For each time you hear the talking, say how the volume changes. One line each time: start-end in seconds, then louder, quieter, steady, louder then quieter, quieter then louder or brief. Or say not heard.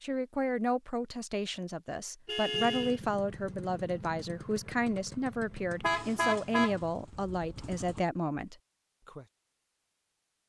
0.0-9.2 steady.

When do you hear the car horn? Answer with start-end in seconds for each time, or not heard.
2.2-3.0, 5.8-7.8.